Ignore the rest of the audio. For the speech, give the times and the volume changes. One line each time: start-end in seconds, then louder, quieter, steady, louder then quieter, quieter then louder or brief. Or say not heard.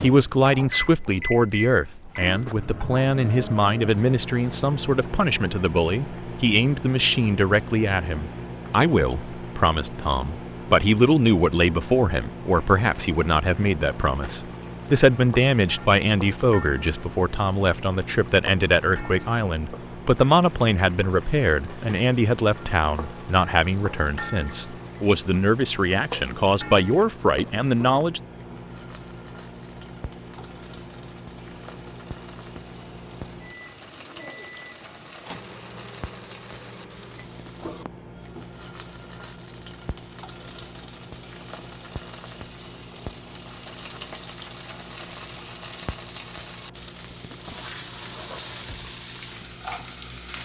0.0-28.2 steady.